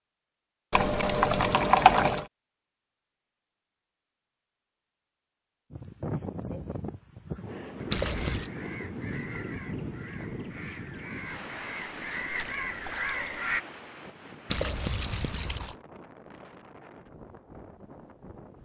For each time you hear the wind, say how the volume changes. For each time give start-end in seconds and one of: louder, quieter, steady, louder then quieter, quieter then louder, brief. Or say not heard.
5.7-18.5 quieter.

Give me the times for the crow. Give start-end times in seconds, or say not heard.
7.8-13.6.